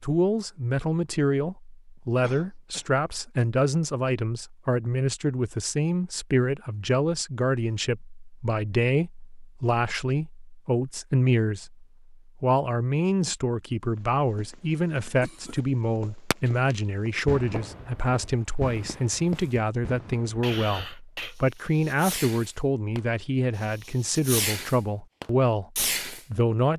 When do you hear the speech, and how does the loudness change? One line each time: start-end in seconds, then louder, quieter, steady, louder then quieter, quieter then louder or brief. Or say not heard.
0.0-26.7 steady.